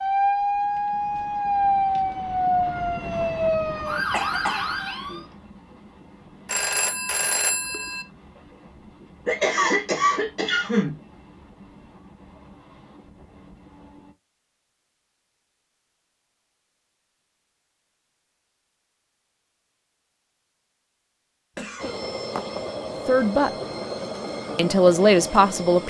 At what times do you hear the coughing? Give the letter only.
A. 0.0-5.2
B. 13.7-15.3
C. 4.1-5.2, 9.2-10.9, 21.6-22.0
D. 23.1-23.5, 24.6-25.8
C.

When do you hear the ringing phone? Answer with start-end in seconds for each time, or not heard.
6.5-8.1.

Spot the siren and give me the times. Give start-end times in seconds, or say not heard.
0.0-5.2.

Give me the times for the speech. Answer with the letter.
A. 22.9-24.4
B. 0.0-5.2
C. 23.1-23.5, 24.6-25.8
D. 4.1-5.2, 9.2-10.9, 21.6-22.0
C.